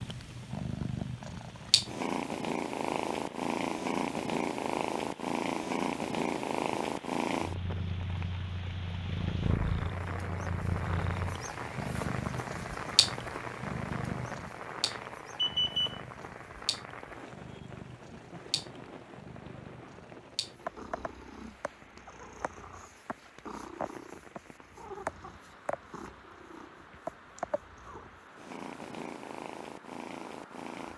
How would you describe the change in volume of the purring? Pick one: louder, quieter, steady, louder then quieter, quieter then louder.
quieter.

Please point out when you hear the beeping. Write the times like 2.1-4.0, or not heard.
14.8-16.0.